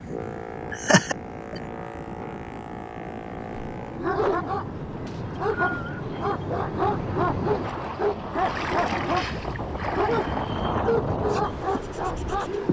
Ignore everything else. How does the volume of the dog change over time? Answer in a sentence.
The volume of the dog stays about the same.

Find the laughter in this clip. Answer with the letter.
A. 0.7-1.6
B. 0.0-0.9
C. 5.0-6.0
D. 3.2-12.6
A.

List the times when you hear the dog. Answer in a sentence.
You can hear the dog from 3.2 to 12.6 s.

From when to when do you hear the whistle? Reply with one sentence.
You can hear the whistle from 5.0 to 6.0 s.